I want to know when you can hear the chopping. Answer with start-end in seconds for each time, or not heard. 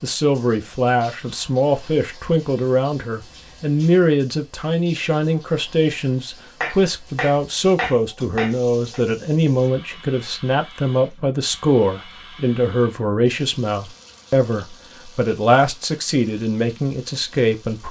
6.6-9.0.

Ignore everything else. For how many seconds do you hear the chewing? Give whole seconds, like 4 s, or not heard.
not heard.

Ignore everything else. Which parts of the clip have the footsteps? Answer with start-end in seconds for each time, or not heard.
not heard.